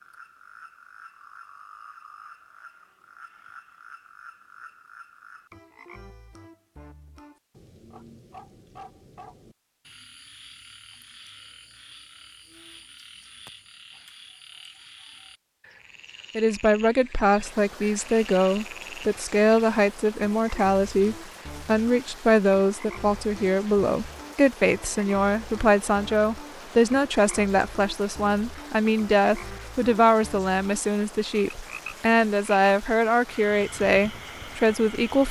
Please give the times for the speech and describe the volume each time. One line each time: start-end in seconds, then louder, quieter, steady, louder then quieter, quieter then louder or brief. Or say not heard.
16.4-35.2 steady.